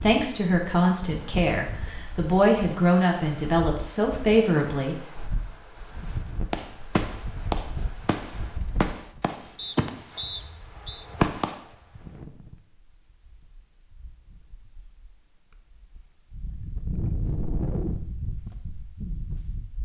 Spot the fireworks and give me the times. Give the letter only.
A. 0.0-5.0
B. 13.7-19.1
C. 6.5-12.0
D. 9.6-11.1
C.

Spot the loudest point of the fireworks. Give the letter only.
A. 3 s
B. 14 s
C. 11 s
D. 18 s
C.